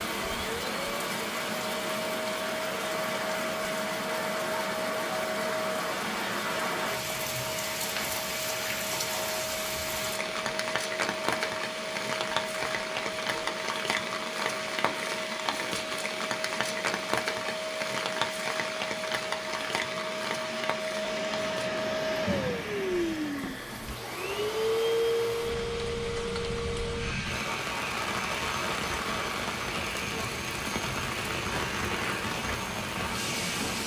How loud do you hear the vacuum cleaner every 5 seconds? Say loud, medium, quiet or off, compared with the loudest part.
medium, medium, medium, medium, loud, loud, medium.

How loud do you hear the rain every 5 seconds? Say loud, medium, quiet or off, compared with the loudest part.
loud, loud, loud, loud, medium, loud, loud.